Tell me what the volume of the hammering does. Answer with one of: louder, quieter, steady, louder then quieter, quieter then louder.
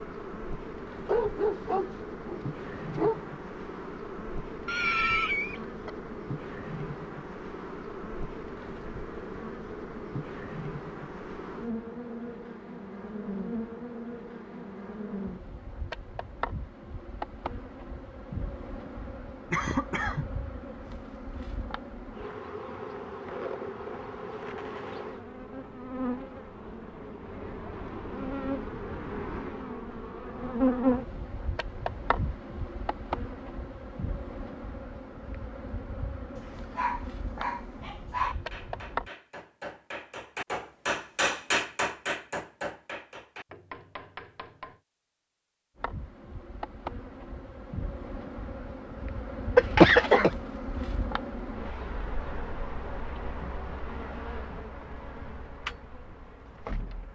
louder then quieter.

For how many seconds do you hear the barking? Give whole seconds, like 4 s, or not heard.
4 s.